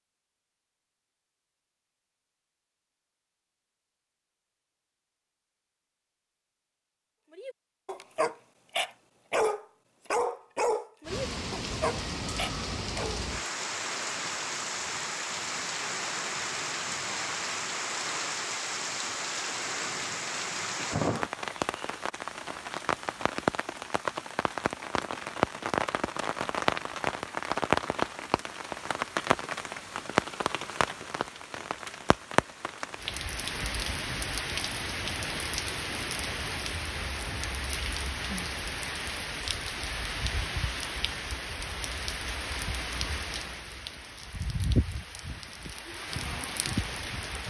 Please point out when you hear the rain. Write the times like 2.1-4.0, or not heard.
11.1-47.4.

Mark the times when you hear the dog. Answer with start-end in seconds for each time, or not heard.
7.3-13.2.